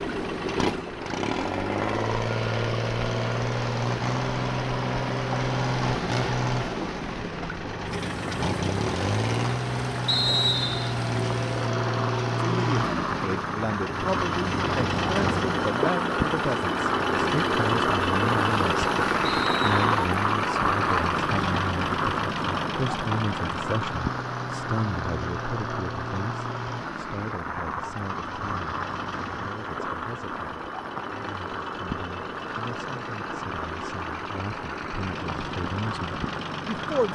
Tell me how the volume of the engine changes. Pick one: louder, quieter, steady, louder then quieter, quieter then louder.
quieter.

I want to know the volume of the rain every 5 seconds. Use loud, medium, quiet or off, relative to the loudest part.
medium, medium, medium, loud, loud, medium, medium, medium.